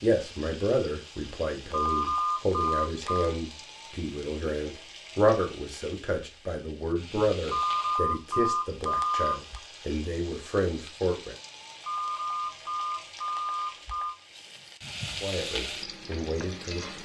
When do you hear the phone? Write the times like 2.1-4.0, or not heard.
1.7-3.4, 7.5-9.6, 11.8-14.2.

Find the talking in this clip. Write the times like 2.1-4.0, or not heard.
0.0-11.3, 15.2-16.9.